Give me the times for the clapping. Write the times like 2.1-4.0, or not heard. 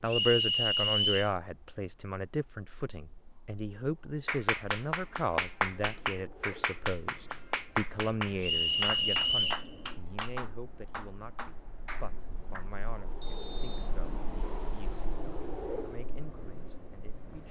4.2-12.7.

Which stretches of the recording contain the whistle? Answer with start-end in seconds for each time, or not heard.
0.1-1.3, 8.4-9.7, 13.2-13.9.